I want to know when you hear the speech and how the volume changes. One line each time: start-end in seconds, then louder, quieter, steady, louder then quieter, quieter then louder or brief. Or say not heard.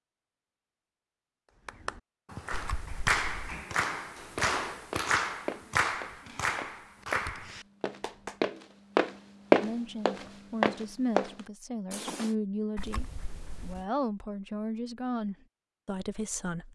9.6-16.7 steady.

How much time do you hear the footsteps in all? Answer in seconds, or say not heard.
8 s.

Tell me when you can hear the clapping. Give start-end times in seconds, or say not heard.
1.6-8.4.